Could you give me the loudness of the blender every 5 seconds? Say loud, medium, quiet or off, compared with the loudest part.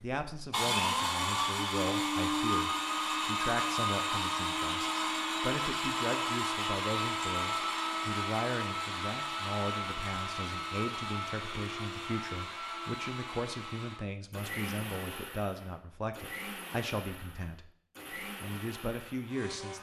loud, loud, medium, quiet.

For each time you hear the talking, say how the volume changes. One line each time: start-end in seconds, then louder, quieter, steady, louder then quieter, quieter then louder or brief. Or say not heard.
0.0-19.7 steady.